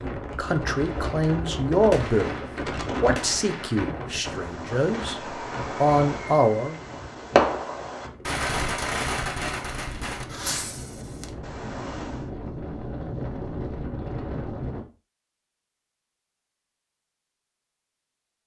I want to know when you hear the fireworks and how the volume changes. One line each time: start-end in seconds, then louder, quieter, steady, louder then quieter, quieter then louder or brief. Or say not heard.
0.7-12.3 louder then quieter.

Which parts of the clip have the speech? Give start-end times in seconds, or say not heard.
0.0-2.3, 3.0-6.8.